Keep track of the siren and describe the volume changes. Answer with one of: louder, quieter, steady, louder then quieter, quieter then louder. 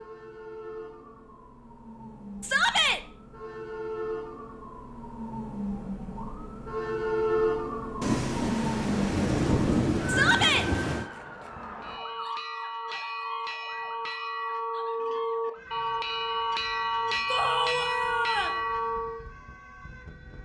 louder then quieter.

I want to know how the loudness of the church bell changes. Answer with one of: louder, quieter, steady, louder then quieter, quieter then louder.
louder.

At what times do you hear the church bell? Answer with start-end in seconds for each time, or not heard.
11.8-19.2.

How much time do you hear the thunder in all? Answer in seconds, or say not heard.
3 s.